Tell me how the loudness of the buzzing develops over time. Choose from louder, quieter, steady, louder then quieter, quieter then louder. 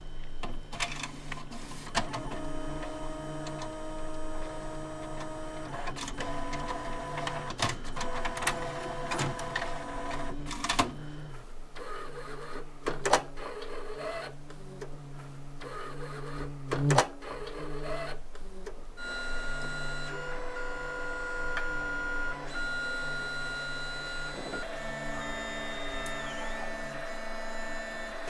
louder then quieter.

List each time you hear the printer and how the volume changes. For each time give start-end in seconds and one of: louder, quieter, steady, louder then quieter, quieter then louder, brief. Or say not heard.
0.0-28.2 steady.